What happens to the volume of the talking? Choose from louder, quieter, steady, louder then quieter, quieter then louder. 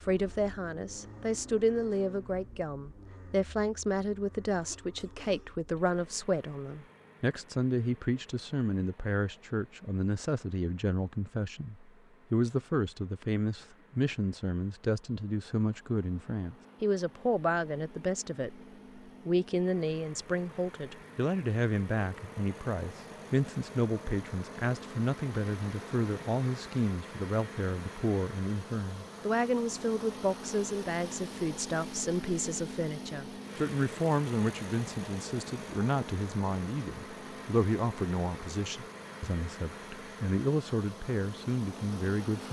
steady.